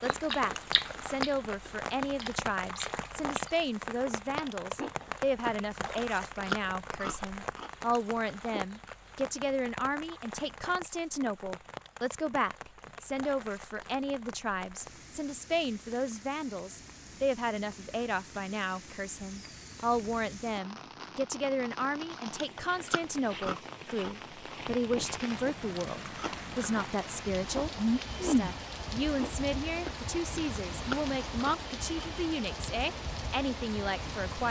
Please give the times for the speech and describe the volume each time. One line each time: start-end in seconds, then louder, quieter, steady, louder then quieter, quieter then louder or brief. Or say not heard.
0.0-34.4 steady.